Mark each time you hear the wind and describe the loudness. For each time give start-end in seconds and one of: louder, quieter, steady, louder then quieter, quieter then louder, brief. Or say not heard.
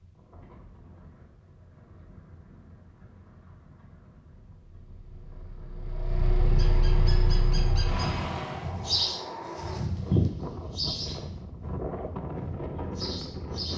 0.0-13.7 louder.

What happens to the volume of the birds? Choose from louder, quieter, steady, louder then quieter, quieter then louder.
louder then quieter.